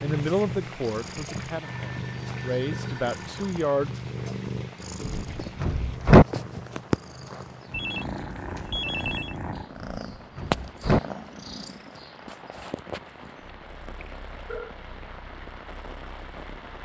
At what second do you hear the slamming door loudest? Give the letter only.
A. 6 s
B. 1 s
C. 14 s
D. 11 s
A.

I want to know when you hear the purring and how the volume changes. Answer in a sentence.
You can hear the purring from 0.0 to 16.8 s, getting quieter.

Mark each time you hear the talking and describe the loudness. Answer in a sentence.
You can hear the talking from 0.0 to 4.0 s, getting quieter then louder.